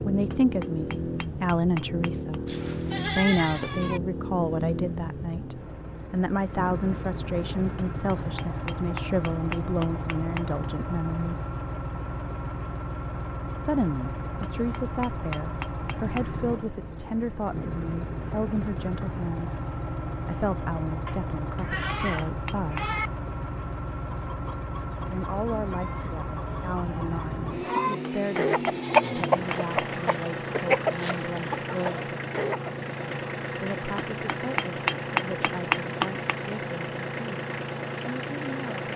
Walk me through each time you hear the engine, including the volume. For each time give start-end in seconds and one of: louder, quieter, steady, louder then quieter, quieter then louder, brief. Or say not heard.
0.0-38.9 steady.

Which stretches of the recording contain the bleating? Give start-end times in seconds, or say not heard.
2.5-4.0, 21.1-23.1.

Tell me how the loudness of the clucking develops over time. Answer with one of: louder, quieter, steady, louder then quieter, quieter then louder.
louder then quieter.